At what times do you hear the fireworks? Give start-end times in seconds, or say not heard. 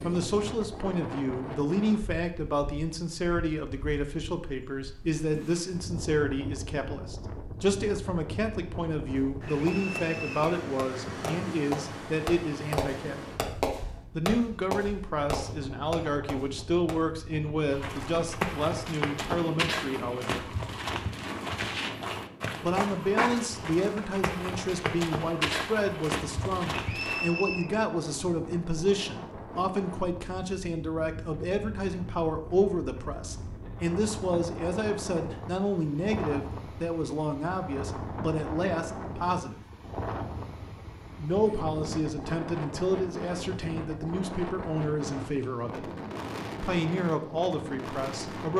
9.2-16.9.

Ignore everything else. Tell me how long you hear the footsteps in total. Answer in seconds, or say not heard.
10 s.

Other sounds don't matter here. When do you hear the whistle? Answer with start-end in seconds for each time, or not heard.
9.5-10.6, 26.7-27.7.